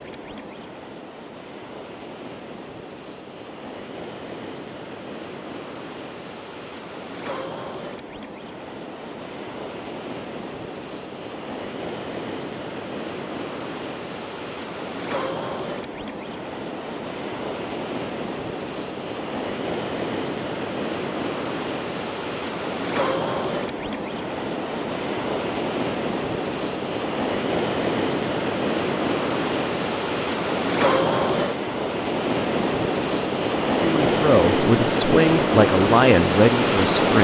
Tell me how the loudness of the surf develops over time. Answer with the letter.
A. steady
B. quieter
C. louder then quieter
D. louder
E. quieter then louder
D.